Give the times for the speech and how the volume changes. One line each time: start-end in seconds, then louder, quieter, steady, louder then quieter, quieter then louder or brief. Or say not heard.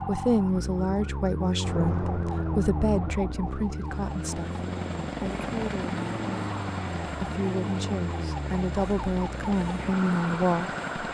0.1-10.8 quieter then louder.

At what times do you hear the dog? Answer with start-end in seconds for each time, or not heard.
not heard.